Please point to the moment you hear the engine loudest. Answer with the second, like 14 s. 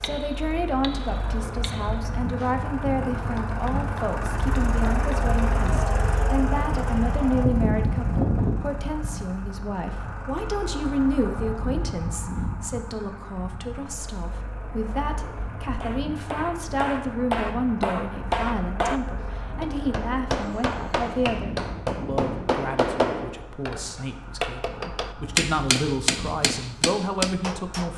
8 s.